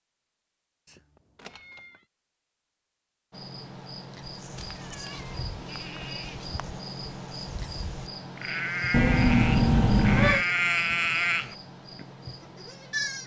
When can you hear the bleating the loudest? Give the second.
11 s.